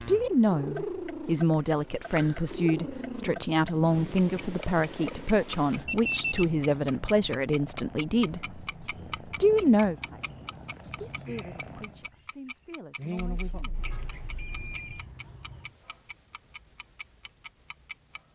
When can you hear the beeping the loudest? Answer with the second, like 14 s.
6 s.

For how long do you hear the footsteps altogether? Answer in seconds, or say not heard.
not heard.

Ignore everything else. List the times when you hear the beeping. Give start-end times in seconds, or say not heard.
5.8-6.8, 13.2-15.1.